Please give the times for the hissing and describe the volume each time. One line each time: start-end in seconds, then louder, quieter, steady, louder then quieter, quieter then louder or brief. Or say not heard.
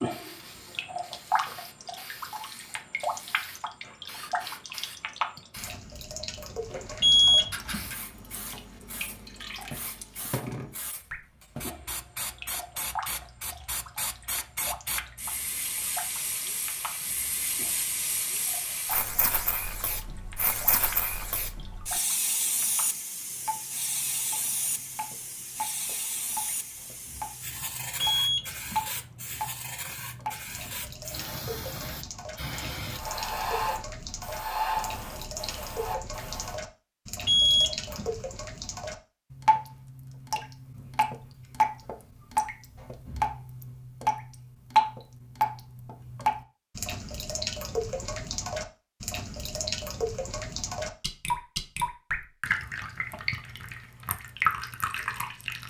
0.1-36.6 louder.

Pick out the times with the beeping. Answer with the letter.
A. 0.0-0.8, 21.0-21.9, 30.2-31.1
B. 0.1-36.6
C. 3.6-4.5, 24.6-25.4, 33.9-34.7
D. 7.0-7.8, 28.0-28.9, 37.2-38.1
D.